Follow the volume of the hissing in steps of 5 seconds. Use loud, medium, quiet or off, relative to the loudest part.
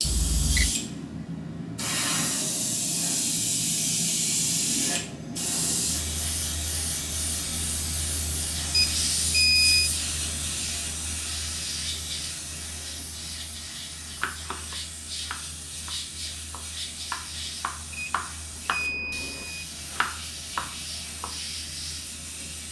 loud, loud, medium, medium, medium.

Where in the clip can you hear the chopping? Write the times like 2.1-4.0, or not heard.
14.2-21.3.